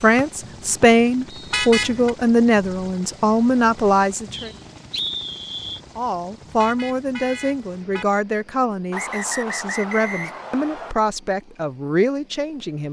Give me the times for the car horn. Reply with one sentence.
The car horn can be heard from 1.5 to 2.1 s and from 6.5 to 8.1 s.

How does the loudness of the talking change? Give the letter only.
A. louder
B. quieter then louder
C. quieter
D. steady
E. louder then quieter
C.